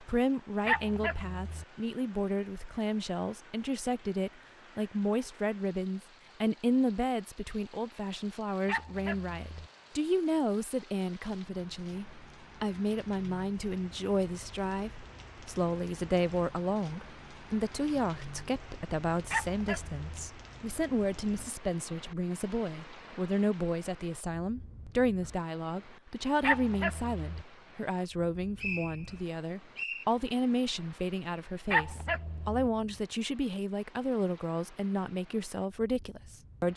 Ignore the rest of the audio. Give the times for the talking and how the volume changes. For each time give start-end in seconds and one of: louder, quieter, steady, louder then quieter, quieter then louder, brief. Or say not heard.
0.0-36.7 steady.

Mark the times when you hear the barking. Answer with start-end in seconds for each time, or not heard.
0.7-1.6, 8.7-9.7, 19.3-20.3, 26.4-27.4, 31.7-32.7.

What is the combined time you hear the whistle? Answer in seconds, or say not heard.
2 s.